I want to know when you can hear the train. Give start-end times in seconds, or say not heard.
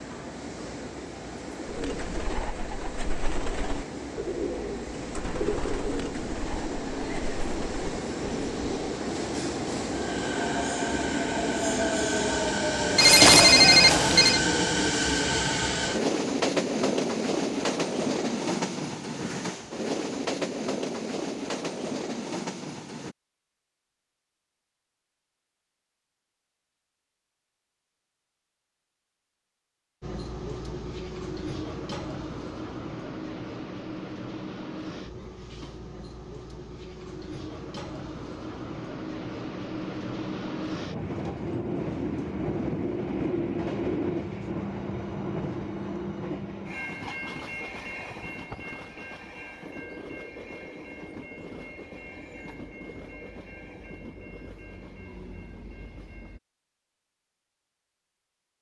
0.0-23.1, 30.0-56.4.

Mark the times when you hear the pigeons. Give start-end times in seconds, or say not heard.
1.6-8.8.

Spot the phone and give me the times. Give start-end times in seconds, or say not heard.
12.9-14.4.